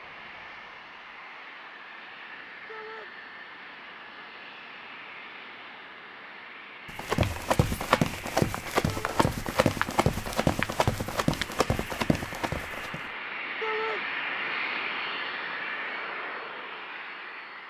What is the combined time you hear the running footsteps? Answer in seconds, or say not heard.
6 s.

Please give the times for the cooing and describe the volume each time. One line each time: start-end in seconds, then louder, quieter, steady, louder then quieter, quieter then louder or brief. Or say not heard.
not heard.